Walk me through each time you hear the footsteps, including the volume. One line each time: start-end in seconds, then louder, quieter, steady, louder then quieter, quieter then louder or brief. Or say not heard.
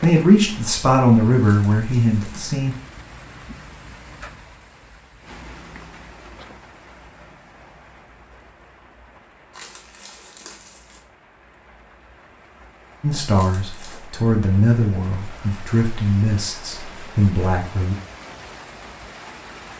not heard.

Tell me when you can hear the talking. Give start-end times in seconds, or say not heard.
0.0-2.8, 13.0-17.9.